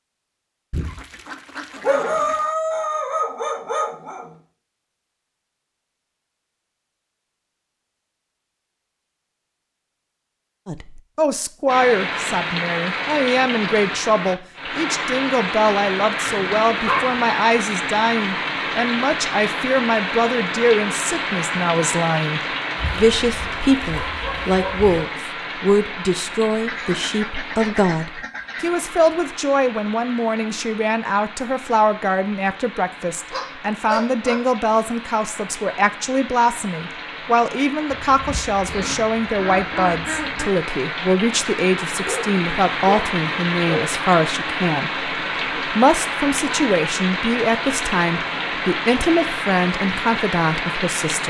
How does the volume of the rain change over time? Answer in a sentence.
The loudness of the rain goes down, then up.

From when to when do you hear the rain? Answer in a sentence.
You can hear the rain from 11.7 to 51.2 s.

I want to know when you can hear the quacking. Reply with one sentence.
You can hear the quacking from 0.7 to 2.5 s, from 26.6 to 28.7 s and from 37.9 to 40.5 s.